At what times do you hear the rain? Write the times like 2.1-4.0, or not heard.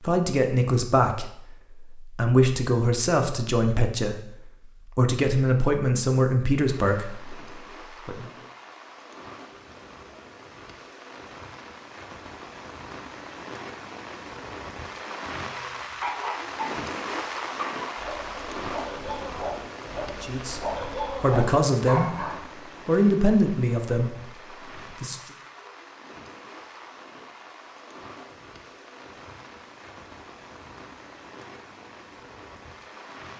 6.7-33.3.